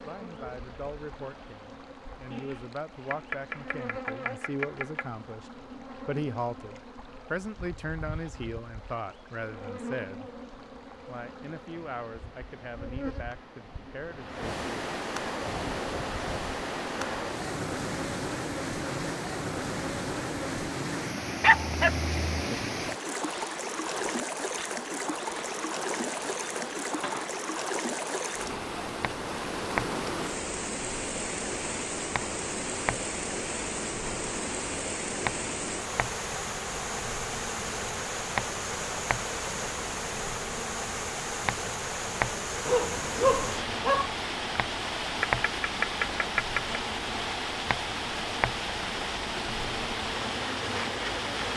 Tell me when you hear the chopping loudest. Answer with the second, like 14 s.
46 s.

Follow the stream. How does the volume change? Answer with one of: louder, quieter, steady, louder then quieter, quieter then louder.
louder.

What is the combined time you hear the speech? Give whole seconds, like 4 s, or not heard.
14 s.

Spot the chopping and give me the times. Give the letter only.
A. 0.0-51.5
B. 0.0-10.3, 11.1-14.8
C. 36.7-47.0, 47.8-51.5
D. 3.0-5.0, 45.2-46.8
D.